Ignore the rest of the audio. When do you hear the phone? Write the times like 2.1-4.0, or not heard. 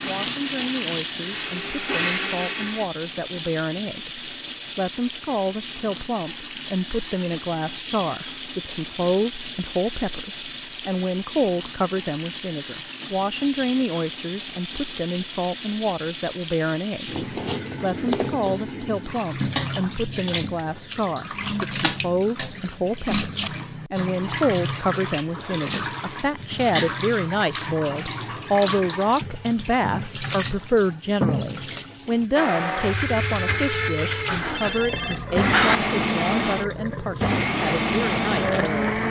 34.2-35.8.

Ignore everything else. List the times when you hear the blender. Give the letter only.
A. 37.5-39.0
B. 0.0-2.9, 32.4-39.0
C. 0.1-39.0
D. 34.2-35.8
B.